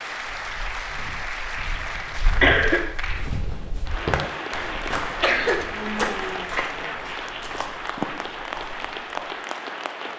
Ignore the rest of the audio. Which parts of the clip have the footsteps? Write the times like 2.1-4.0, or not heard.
0.3-9.3.